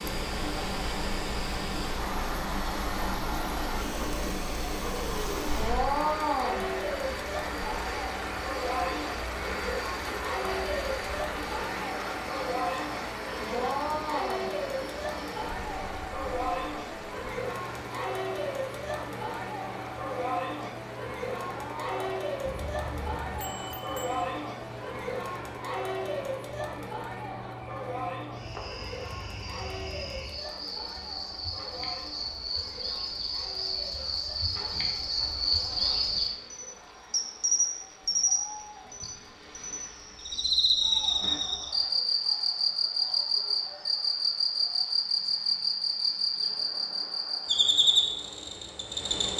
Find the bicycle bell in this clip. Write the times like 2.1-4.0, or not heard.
22.4-24.3.